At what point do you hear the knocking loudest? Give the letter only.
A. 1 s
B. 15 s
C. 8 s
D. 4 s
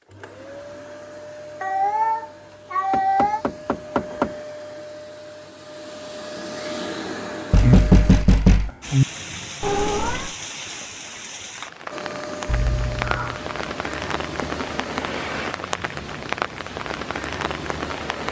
C.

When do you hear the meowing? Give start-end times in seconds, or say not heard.
1.6-3.5, 9.6-10.3, 12.4-13.4.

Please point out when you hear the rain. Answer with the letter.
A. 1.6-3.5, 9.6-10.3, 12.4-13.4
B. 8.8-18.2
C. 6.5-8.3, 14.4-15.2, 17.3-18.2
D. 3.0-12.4
B.